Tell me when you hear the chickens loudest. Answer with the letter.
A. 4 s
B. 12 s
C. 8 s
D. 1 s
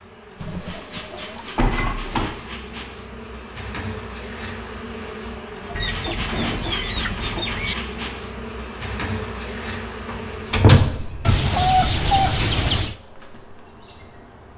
B.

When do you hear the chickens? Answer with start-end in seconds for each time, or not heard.
0.3-2.2, 5.8-7.8, 11.2-12.9.